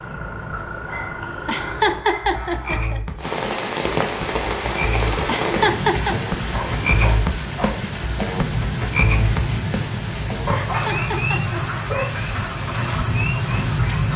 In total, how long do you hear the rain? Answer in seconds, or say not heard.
11 s.